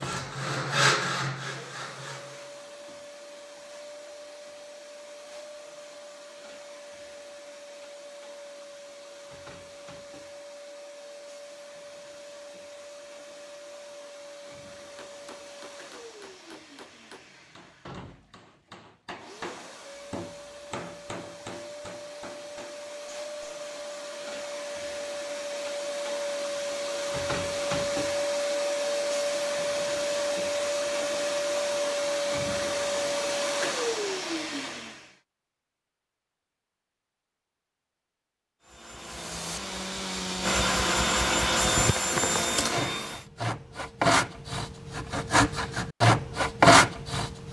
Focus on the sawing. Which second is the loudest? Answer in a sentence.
The volume of the sawing peaks at 47 seconds.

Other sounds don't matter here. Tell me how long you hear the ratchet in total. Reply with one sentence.
The ratchet can't be heard in this clip.